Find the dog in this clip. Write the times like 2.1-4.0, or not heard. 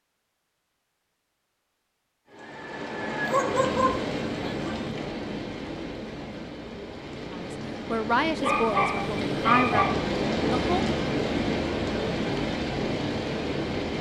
3.2-4.9, 8.4-9.9.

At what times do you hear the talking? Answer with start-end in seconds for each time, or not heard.
7.3-10.8.